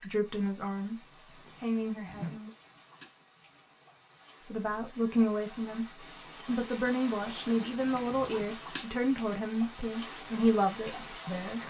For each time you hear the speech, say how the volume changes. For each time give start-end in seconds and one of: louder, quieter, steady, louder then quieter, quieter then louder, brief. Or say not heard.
0.0-2.5 brief
4.4-11.6 steady.